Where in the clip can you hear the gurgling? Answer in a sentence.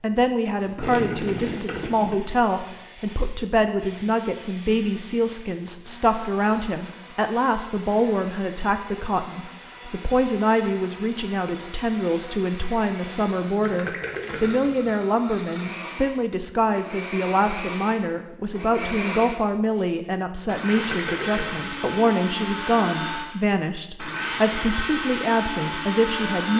You can hear the gurgling from 0.8 to 2.1 s, from 13.6 to 14.9 s and from 20.7 to 21.9 s.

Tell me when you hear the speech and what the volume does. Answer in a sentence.
You can hear the speech from 0.0 to 26.5 s, at a steady volume.